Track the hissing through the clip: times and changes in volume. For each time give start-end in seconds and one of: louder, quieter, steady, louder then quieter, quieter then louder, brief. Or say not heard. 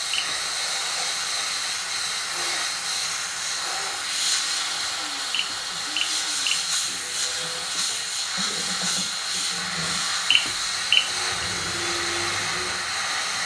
0.0-13.4 steady.